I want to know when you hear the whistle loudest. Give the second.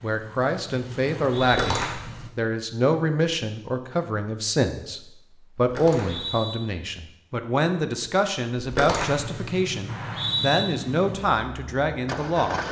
10 s.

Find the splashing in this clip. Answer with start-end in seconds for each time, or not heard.
1.4-2.3, 5.5-6.3, 8.6-9.4.